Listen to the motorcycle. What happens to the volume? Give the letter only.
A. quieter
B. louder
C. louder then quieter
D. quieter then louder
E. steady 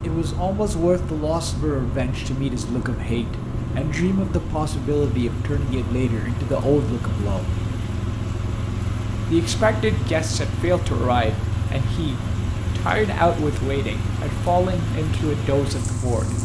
E.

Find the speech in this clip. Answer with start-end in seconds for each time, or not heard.
0.0-7.5, 9.2-16.4.